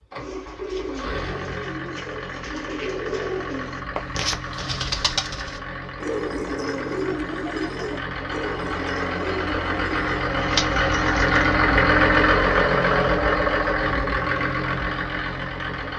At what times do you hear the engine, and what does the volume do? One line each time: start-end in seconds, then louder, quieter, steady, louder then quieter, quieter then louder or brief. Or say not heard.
0.0-15.9 louder.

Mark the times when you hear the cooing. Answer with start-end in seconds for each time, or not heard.
0.1-11.6.